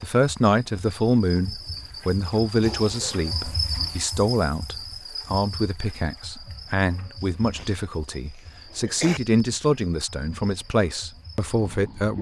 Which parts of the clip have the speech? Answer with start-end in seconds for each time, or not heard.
0.0-12.1.